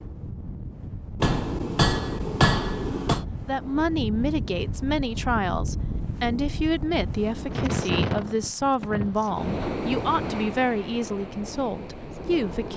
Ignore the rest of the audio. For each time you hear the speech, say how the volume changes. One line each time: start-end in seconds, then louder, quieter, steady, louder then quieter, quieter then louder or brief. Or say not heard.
3.5-12.7 steady.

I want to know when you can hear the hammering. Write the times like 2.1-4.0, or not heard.
1.2-3.2.